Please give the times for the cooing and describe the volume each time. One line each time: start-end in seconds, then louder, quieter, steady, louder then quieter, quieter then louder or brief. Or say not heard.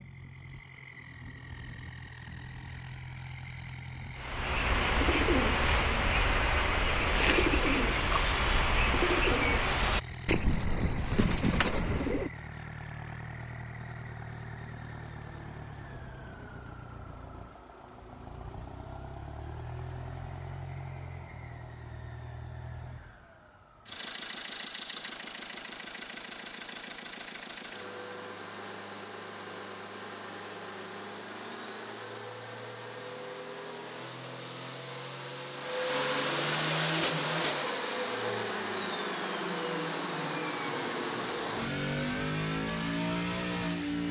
4.2-12.3 steady.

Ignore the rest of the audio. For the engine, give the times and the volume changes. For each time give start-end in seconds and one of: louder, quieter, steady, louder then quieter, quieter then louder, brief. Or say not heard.
0.0-44.0 louder.